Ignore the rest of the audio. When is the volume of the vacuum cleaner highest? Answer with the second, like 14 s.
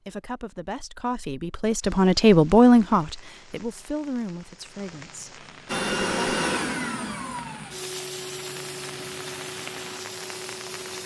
6 s.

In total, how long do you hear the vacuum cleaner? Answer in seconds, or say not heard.
5 s.